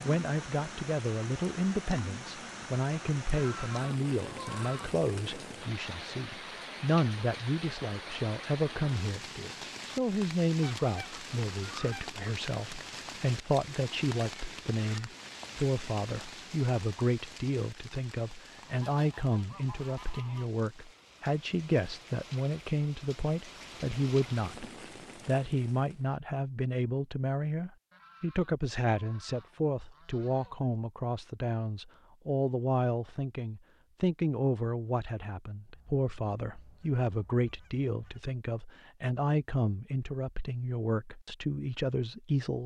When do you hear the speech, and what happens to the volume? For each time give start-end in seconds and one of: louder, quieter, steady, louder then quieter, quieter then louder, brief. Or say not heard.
0.0-24.6 steady
25.2-42.6 steady.